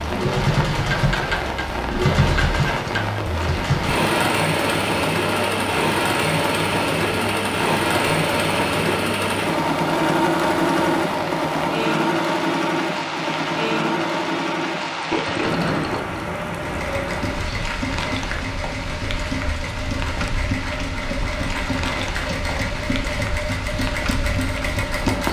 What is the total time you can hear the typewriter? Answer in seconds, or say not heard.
not heard.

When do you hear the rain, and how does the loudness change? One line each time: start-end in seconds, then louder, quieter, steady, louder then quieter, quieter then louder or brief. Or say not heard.
0.0-25.2 steady.